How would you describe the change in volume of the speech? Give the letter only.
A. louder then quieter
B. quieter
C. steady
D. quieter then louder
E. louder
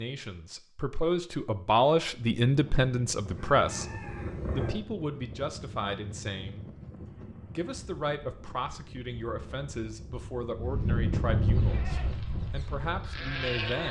B.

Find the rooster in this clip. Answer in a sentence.
You can hear the rooster from 3.2 to 4.8 s.